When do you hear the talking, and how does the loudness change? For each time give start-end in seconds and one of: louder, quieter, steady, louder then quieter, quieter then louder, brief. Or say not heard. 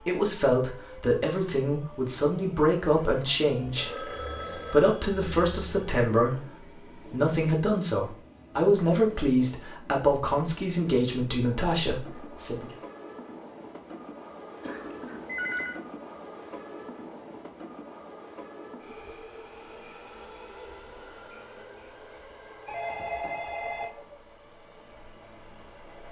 0.0-12.7 steady.